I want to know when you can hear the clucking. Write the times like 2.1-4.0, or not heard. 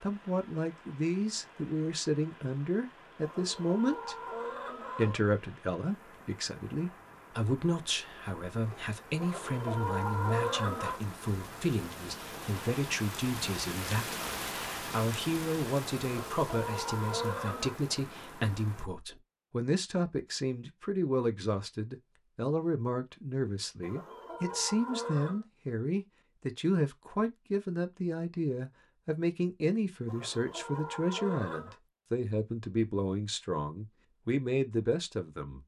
3.2-5.2, 9.2-11.0, 16.0-17.8, 23.8-25.4, 30.1-31.8.